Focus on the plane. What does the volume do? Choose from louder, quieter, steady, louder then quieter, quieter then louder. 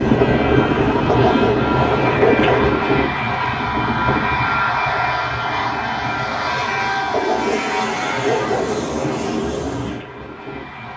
quieter.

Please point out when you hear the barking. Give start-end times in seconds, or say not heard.
1.1-2.7, 7.1-8.8.